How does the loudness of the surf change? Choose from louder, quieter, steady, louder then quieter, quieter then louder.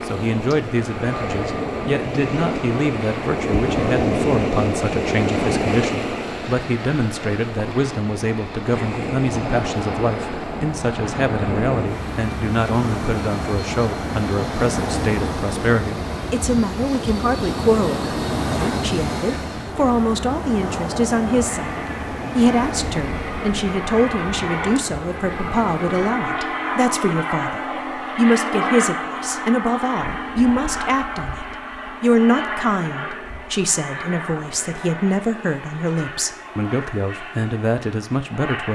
quieter.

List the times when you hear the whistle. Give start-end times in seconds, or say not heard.
not heard.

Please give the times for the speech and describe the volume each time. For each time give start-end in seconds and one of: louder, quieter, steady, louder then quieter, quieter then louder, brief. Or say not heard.
0.1-38.7 steady.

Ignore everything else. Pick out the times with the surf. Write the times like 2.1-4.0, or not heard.
0.0-26.2.